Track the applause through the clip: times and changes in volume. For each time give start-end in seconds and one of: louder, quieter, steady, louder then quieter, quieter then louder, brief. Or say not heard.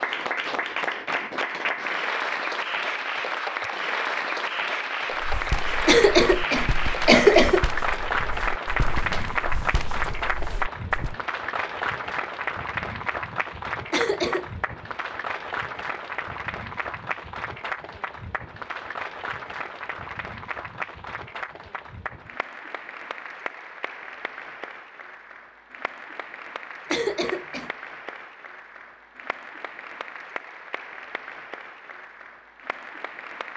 0.0-33.5 quieter.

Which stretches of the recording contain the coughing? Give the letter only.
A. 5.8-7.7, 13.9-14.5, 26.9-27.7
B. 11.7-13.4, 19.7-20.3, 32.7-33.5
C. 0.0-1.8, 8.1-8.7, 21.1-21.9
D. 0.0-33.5
A.